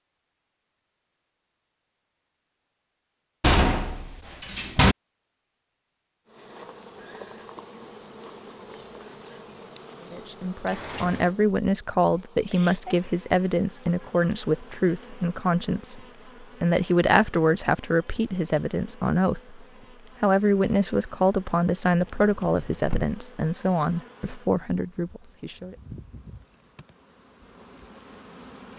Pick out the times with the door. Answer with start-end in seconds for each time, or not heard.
3.4-5.0, 10.7-11.3, 21.9-23.1.